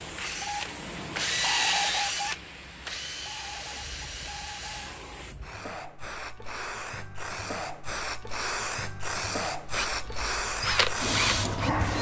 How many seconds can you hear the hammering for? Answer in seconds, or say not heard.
not heard.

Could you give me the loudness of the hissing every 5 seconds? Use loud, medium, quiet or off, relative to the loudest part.
quiet, medium, loud.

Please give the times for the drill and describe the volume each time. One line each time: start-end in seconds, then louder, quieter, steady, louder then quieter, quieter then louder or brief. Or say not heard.
0.0-5.0 louder then quieter
9.7-11.9 brief.